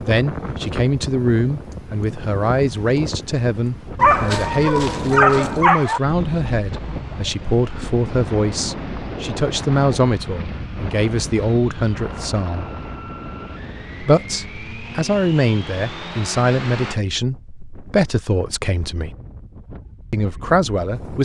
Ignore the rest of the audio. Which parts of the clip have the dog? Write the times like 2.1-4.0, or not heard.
4.0-6.0.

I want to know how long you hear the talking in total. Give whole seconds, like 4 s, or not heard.
19 s.